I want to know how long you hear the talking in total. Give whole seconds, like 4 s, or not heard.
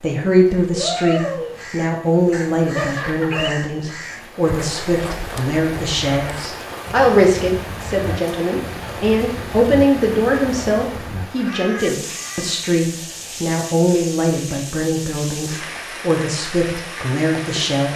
18 s.